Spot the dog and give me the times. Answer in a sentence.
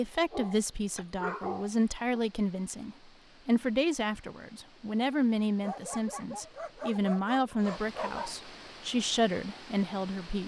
The dog can be heard from 0.1 to 2.2 s and from 5.6 to 8.3 s.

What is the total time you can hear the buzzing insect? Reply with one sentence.
The buzzing insect can't be heard in this clip.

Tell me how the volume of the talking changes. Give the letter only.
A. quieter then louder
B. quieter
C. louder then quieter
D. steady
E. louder
D.